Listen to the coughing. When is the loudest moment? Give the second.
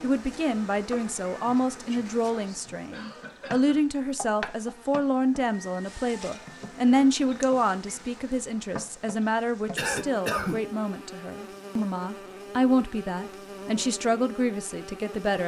10 s.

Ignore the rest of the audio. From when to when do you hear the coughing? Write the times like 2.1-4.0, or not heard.
2.9-4.0, 9.8-10.6.